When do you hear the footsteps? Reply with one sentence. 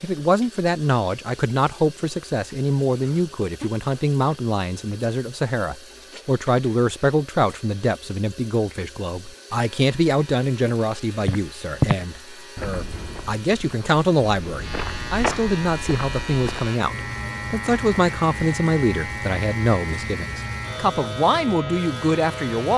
The footsteps can be heard from 11.2 to 16.7 s.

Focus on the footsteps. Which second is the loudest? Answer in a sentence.
The volume of the footsteps peaks at 12 seconds.